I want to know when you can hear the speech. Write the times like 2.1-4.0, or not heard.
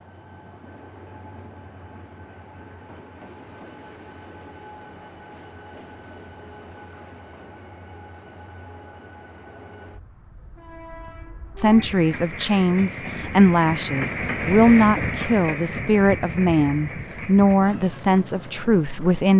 11.6-19.3.